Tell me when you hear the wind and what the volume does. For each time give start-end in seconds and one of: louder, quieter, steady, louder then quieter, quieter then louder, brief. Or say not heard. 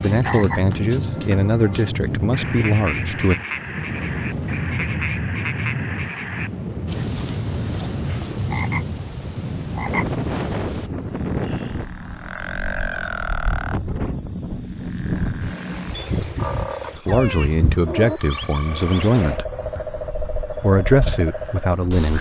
0.0-22.1 quieter.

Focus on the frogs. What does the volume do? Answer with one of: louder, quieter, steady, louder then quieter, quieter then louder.
steady.